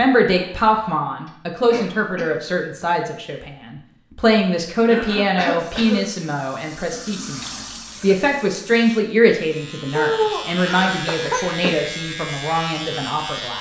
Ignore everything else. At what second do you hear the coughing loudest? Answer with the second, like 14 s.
10 s.